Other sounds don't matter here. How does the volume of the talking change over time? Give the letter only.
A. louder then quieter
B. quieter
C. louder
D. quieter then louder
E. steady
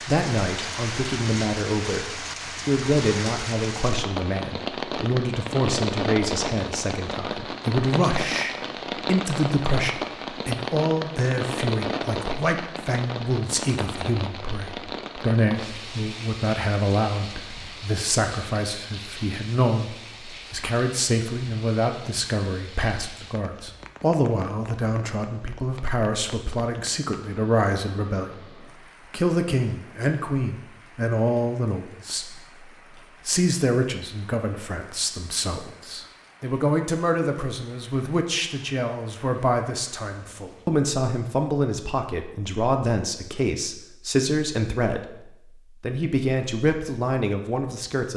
E.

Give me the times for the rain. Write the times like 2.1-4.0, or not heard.
0.0-40.9.